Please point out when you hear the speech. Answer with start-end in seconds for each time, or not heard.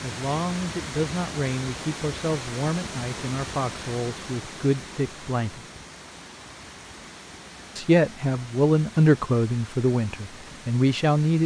0.0-5.7, 7.8-11.4.